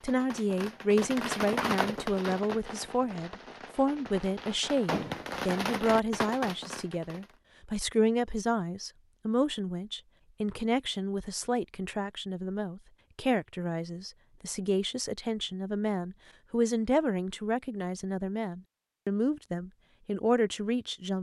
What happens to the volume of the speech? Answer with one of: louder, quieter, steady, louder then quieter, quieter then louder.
steady.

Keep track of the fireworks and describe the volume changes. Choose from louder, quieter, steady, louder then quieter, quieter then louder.
quieter then louder.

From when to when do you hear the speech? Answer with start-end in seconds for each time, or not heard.
0.0-21.1.